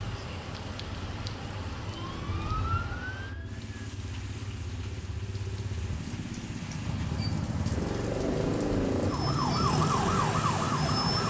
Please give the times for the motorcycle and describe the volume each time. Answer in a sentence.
The motorcycle can be heard from 0.2 to 11.2 s, getting louder.